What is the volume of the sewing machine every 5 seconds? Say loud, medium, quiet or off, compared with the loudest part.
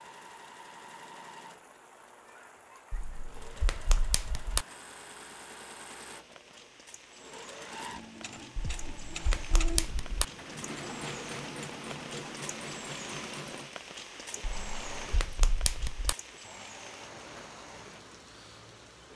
medium, loud, loud, medium.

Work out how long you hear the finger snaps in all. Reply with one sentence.
You can hear the finger snaps for 5 seconds altogether.